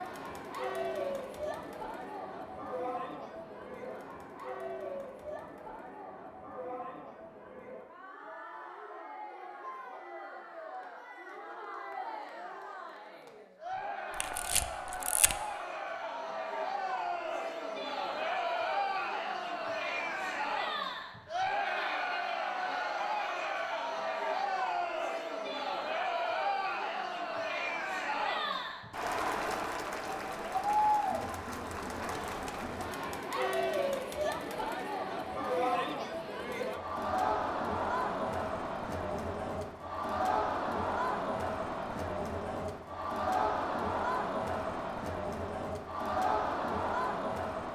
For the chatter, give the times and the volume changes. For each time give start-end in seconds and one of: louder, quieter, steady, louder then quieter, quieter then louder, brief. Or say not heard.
0.0-47.6 louder.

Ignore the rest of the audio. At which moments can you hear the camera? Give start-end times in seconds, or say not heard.
14.2-15.3.